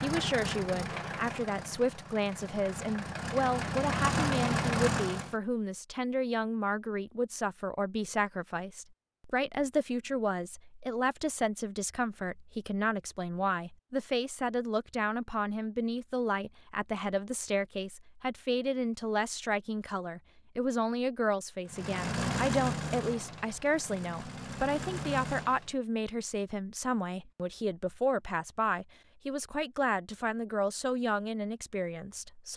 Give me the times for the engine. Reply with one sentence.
You can hear the engine from 0.0 to 5.3 s and from 21.6 to 25.8 s.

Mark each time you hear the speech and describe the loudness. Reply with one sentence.
You can hear the speech from 0.0 to 32.5 s, at a steady volume.